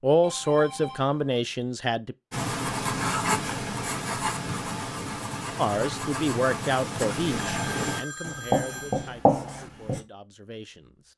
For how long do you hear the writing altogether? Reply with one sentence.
You can hear the writing for 8 seconds altogether.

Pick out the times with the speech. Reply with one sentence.
You can hear the speech from 0.0 to 2.1 s and from 5.5 to 10.9 s.